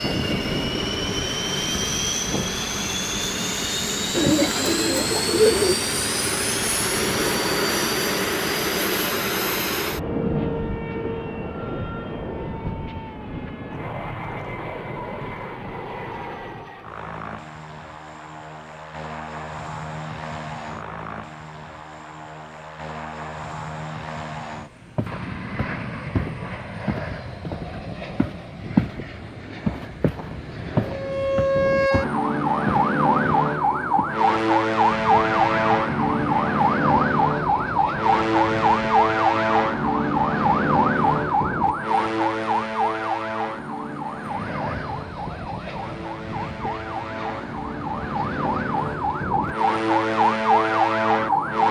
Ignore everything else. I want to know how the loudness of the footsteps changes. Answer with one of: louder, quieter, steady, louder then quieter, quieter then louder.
louder then quieter.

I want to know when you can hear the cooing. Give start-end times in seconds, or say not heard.
4.1-5.8.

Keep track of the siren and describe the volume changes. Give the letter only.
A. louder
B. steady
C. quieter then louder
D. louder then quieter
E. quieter
C.